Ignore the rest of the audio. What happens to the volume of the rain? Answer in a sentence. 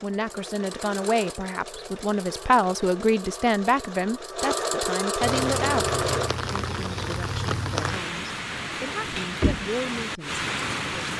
The volume of the rain stays about the same.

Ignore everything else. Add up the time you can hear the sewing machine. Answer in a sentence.
You can hear the sewing machine for 6 seconds altogether.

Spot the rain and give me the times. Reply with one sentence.
The rain can be heard from 5.2 to 11.1 s.